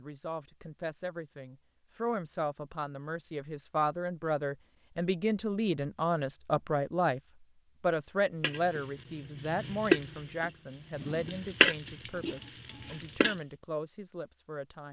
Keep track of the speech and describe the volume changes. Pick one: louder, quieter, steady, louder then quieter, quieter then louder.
louder then quieter.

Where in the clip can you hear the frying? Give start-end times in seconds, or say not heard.
8.4-13.3.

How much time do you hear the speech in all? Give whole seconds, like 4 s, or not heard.
14 s.